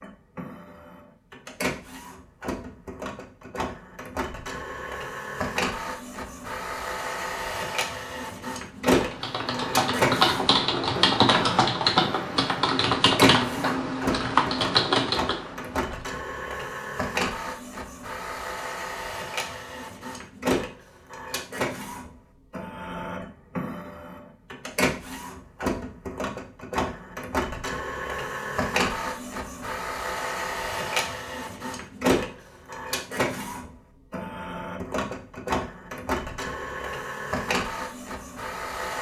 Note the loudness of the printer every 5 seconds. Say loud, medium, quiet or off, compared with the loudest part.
medium, loud, loud, loud, loud, loud, loud, loud.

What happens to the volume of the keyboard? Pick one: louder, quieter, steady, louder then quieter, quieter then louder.
steady.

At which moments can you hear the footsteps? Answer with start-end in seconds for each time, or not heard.
not heard.